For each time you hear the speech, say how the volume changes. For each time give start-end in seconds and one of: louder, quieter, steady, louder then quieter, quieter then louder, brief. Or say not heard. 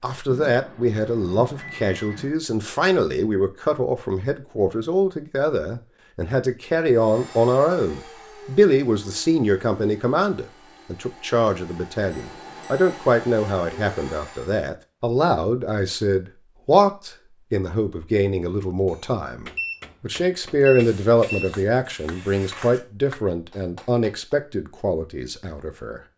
0.0-26.0 steady.